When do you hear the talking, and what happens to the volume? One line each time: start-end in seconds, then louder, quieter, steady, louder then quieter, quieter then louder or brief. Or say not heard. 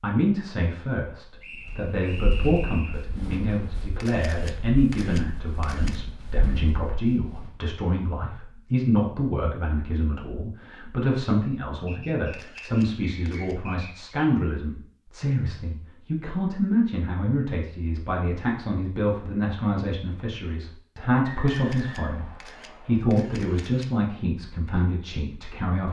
0.0-25.8 steady.